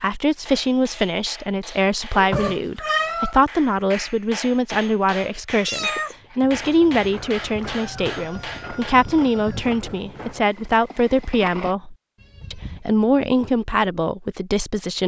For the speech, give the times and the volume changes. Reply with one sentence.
The speech can be heard from 0.0 to 15.0 s, at a steady volume.